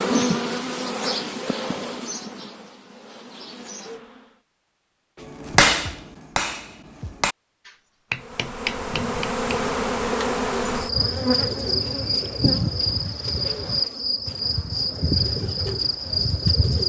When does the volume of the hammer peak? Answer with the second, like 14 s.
6 s.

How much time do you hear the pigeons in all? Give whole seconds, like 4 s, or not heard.
8 s.